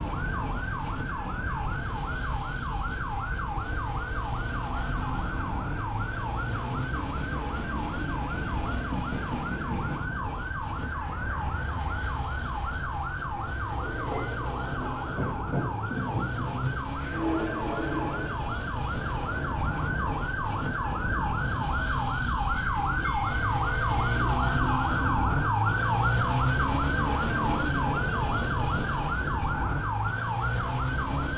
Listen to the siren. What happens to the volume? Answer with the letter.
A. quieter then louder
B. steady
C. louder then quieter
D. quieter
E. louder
E.